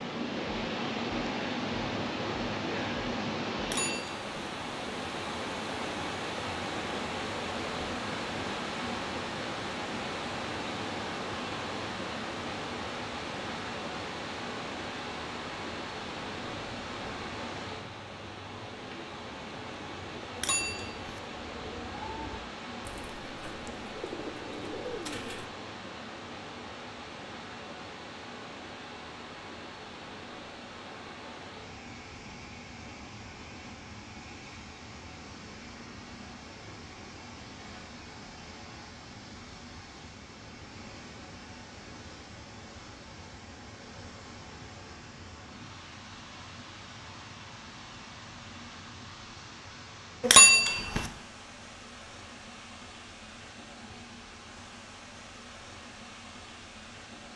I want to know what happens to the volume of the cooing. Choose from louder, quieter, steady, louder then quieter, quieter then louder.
louder.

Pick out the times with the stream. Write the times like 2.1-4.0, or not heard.
0.0-57.3.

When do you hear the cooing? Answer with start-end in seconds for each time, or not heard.
16.4-25.4.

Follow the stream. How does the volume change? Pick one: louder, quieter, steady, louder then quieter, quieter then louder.
quieter.